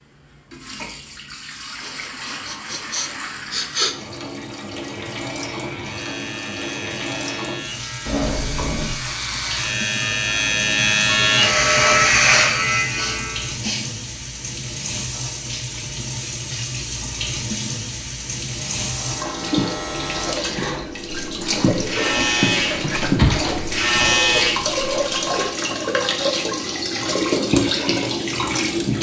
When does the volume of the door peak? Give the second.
23 s.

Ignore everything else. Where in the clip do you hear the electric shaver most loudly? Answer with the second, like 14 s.
12 s.